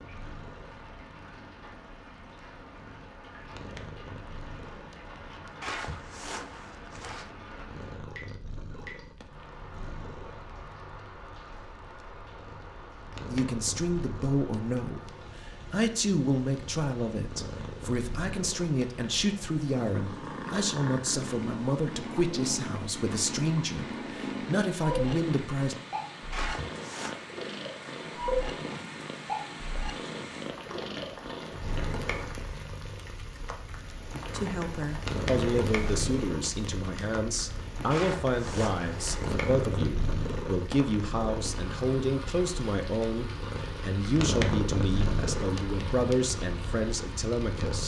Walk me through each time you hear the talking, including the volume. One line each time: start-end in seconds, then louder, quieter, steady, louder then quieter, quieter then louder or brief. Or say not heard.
13.2-25.8 steady
34.3-47.8 steady.